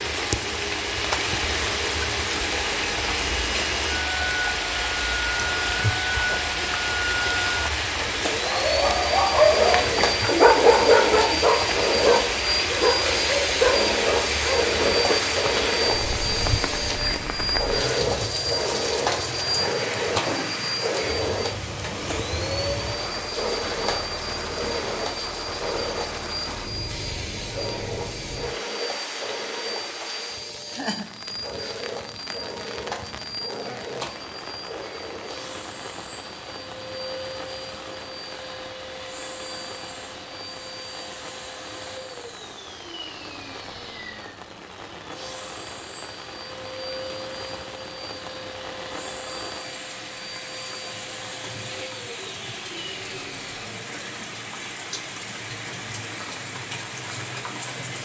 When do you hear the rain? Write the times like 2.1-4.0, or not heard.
0.0-57.9.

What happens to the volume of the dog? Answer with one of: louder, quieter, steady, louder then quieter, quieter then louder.
quieter.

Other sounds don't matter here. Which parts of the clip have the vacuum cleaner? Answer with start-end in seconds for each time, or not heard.
0.0-53.6.